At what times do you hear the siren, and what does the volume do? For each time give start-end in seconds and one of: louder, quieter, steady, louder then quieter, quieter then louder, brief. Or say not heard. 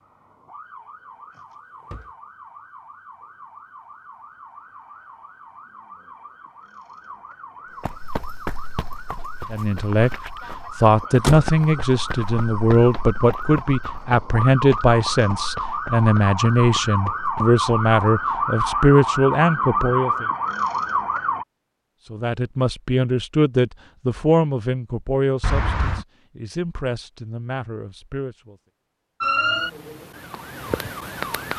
0.0-21.4 louder
29.2-31.5 brief.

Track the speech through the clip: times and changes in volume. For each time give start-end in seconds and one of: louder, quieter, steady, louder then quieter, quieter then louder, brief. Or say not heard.
9.5-20.2 steady
22.1-28.6 quieter.